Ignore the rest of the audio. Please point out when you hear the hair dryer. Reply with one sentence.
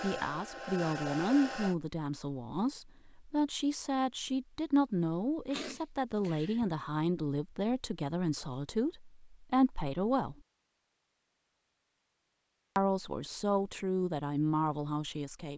You can hear the hair dryer from 0.0 to 1.8 s.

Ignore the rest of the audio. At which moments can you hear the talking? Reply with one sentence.
You can hear the talking from 0.0 to 10.3 s and from 12.8 to 15.5 s.